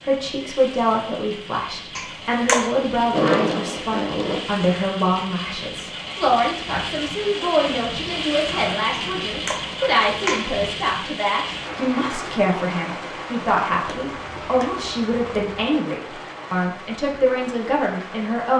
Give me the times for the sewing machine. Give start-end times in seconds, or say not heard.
3.0-4.4.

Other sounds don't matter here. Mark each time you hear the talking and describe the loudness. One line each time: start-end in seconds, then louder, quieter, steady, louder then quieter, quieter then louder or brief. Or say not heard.
0.0-18.5 steady.